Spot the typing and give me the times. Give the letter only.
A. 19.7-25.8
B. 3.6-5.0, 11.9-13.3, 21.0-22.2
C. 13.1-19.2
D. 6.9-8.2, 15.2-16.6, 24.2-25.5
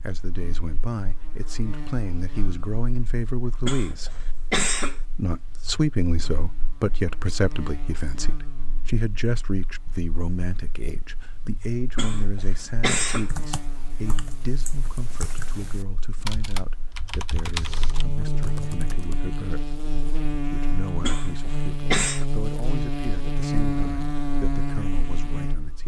C.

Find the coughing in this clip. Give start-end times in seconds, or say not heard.
3.6-5.0, 11.9-13.3, 21.0-22.2.